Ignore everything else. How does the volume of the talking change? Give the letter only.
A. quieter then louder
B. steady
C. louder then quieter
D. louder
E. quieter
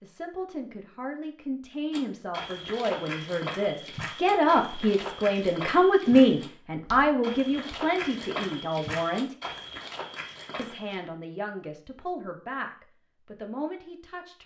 C.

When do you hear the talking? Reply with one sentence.
The talking can be heard from 0.0 to 9.3 s and from 10.6 to 14.4 s.